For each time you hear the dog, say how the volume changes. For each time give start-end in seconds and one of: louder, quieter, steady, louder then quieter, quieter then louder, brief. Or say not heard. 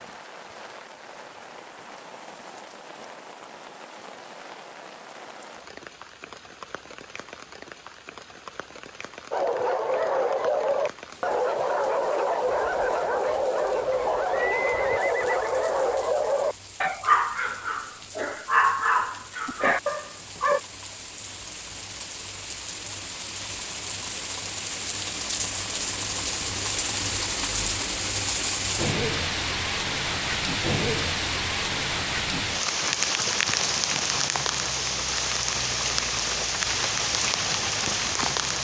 9.3-20.6 steady.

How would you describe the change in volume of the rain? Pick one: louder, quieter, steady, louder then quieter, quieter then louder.
louder.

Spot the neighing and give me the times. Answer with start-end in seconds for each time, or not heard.
14.2-15.7.